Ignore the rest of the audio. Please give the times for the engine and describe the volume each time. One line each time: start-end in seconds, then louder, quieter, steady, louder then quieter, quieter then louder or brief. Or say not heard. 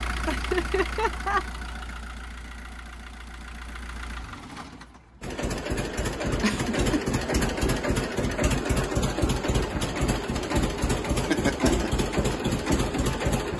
0.0-13.5 louder.